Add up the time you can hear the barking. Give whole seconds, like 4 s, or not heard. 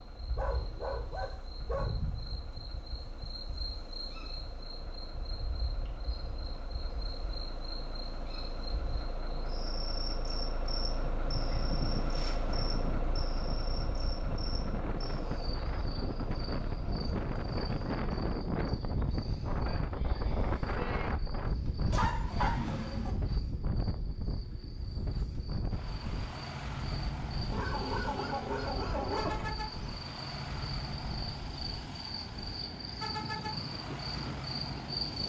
7 s.